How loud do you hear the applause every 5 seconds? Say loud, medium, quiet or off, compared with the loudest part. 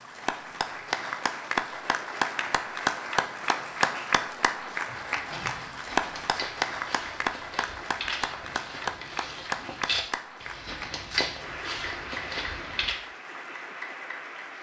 loud, loud, medium.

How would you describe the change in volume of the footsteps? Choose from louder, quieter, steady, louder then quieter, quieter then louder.
louder.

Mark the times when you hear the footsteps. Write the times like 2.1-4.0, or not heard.
4.9-12.9.